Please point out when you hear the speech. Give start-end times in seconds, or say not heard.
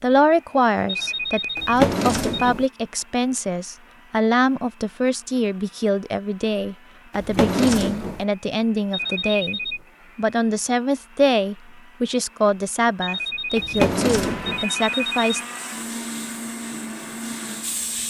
0.0-15.4.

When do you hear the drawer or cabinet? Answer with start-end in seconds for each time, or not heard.
1.6-2.6, 7.1-8.2, 13.6-14.7.